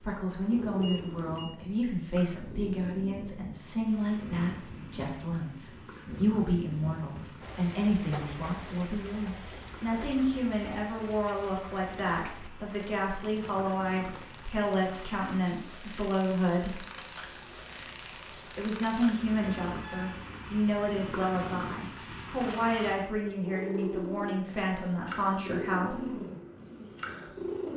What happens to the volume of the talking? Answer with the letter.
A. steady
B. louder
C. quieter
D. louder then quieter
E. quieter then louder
A.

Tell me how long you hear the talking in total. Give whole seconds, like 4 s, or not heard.
24 s.